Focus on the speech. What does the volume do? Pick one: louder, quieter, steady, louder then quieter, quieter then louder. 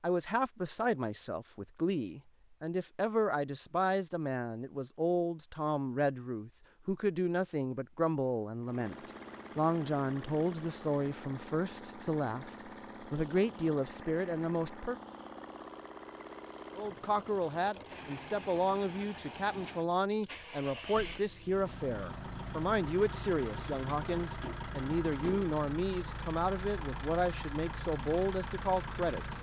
steady.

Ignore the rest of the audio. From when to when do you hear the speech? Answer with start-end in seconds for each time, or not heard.
0.0-14.9, 16.8-29.2.